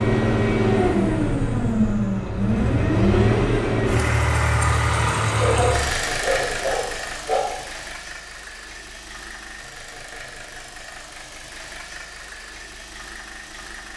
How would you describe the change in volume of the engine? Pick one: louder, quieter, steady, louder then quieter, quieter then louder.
quieter.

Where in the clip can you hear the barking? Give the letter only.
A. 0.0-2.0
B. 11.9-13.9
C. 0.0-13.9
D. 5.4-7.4
D.